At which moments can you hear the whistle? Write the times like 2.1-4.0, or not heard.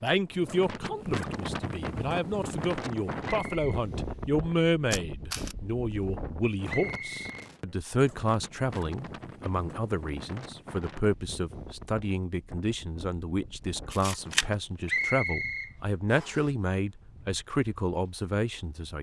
3.2-3.8, 6.7-7.5, 14.8-16.4.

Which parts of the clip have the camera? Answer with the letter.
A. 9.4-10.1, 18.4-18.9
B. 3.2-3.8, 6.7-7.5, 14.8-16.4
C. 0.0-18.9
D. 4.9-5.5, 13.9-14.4
D.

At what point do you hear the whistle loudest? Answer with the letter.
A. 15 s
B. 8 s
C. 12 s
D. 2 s
A.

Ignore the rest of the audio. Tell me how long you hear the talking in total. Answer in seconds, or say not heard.
19 s.